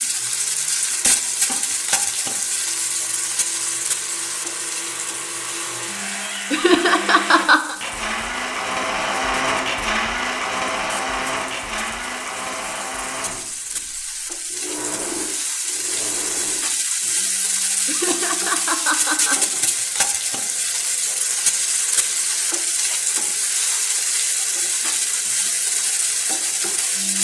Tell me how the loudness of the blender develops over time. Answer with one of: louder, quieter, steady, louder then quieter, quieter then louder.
louder then quieter.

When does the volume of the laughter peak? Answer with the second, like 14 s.
7 s.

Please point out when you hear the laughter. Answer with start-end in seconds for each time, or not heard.
6.5-7.8, 17.9-19.4.